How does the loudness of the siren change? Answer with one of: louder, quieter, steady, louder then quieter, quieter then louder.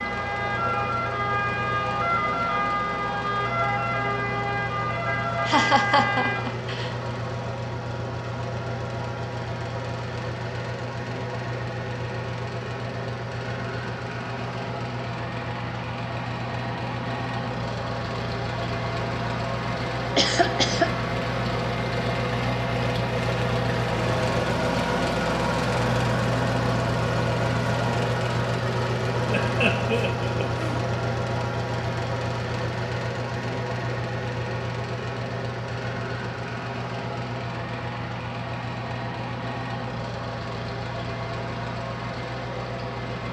steady.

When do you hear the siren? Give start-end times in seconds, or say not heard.
0.0-6.5.